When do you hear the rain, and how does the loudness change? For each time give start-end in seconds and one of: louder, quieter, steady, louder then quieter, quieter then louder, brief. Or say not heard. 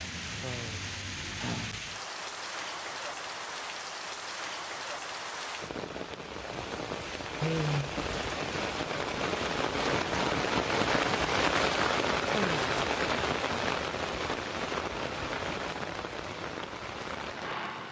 0.0-17.8 louder then quieter.